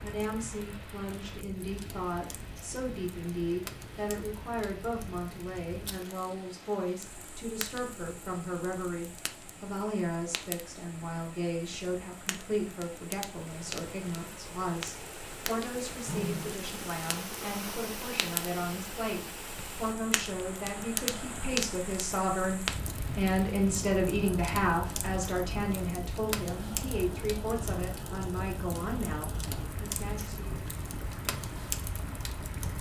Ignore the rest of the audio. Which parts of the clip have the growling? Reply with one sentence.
The growling can be heard from 15.9 to 16.6 s.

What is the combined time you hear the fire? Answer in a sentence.
The fire can be heard for 33 seconds in total.